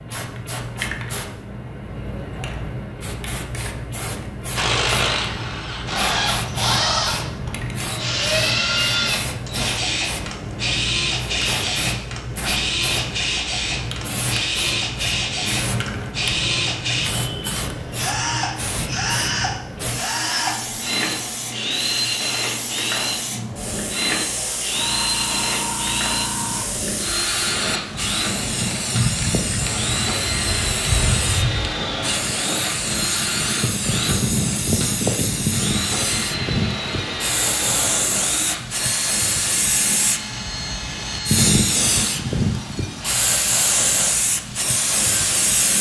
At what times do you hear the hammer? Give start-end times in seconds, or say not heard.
not heard.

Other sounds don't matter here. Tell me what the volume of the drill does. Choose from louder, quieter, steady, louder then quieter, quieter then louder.
quieter.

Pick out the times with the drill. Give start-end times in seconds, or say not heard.
4.5-45.7.